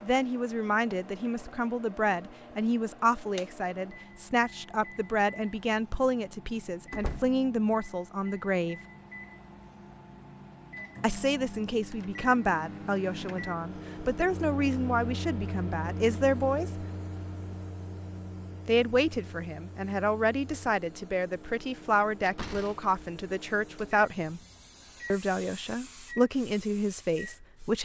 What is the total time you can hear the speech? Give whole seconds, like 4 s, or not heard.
23 s.